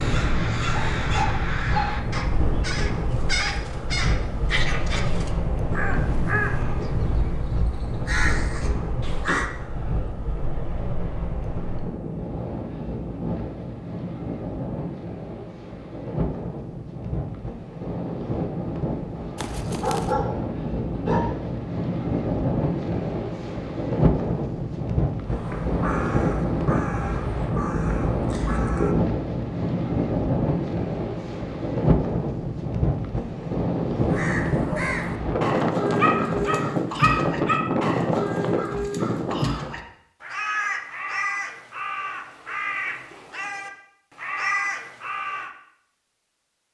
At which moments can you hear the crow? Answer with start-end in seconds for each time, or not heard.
0.0-9.5, 25.2-28.9, 34.0-45.5.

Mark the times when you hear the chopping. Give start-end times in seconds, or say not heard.
not heard.